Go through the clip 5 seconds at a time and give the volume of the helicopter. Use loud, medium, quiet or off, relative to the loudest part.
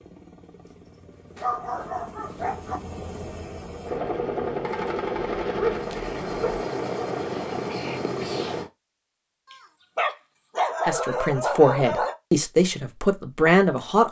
medium, loud, off.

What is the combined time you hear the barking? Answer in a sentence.
The barking can be heard for 6 seconds in total.